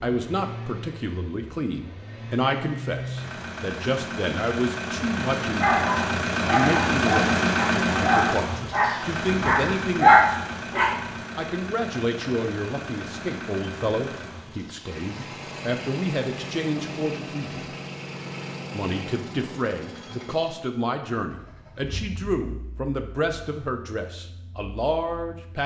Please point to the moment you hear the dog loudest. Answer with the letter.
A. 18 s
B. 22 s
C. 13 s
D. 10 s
D.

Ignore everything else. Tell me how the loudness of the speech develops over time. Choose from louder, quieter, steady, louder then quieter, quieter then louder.
steady.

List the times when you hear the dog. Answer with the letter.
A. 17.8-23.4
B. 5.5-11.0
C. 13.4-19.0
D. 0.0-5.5
B.